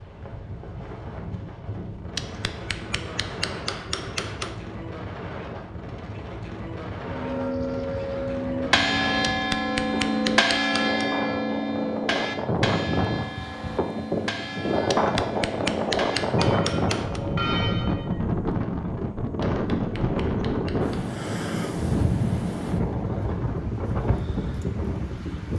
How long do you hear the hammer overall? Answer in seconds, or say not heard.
8 s.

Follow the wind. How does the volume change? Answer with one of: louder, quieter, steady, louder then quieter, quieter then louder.
louder.